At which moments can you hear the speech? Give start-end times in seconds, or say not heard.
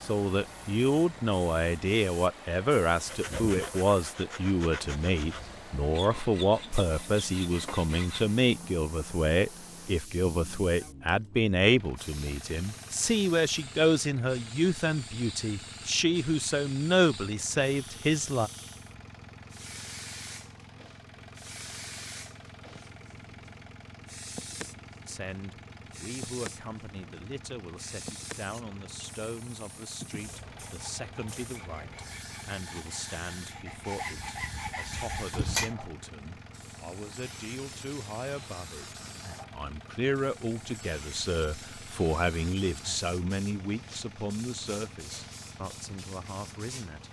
0.0-18.5, 25.1-47.0.